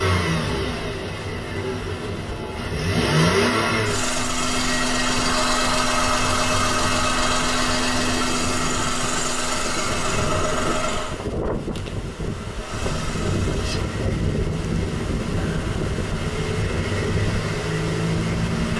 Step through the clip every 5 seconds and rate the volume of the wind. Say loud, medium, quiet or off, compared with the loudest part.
medium, medium, loud, loud.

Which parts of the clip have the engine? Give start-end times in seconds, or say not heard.
0.0-11.2, 12.6-18.7.